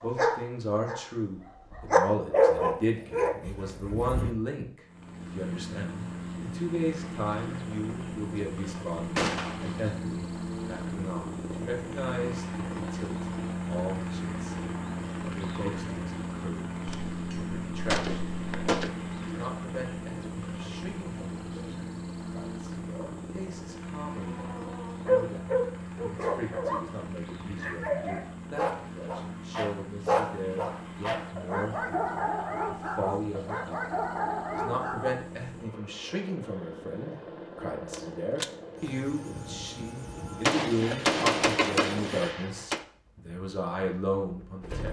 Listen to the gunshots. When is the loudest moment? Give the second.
41 s.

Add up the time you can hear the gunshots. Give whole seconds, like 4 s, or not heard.
7 s.